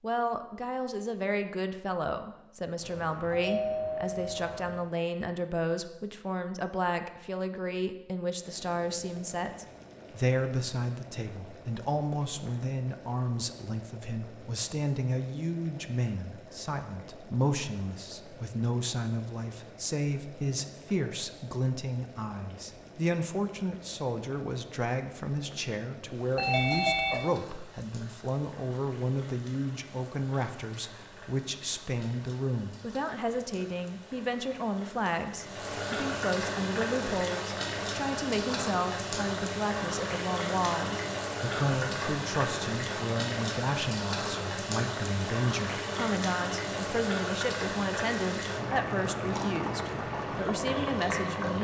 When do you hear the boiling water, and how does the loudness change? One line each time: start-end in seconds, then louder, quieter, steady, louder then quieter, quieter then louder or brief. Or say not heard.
8.4-51.6 louder.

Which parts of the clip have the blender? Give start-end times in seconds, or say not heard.
not heard.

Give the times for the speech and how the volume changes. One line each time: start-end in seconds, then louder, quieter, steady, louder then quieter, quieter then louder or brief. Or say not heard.
0.0-51.6 steady.